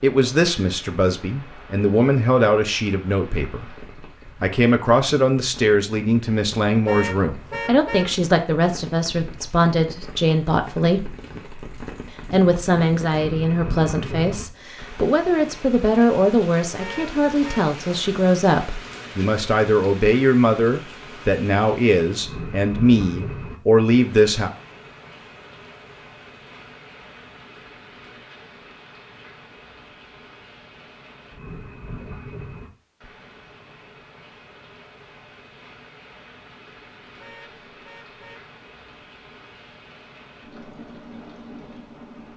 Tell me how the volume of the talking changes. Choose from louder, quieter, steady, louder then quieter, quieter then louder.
steady.